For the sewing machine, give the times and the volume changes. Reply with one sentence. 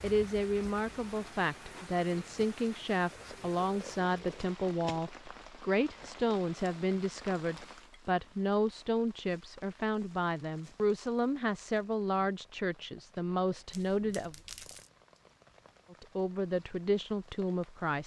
You can't hear the sewing machine here.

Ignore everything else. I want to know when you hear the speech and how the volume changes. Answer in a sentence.
You can hear the speech from 0.0 to 14.3 s, at a steady volume; and briefly from 15.9 to 18.0 s.